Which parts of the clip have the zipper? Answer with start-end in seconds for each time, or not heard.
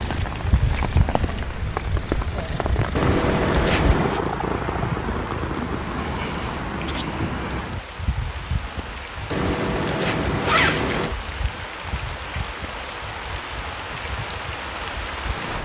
3.0-4.2, 9.3-11.2.